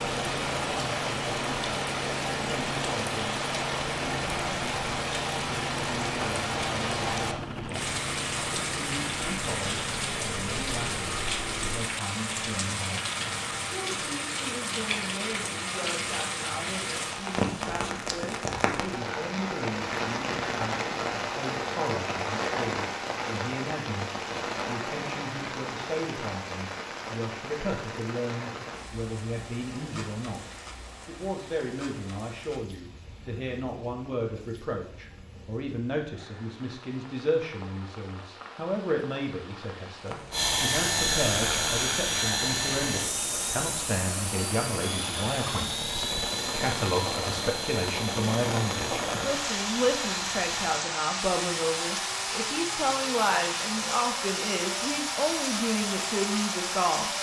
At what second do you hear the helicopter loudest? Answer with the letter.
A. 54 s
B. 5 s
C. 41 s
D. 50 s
C.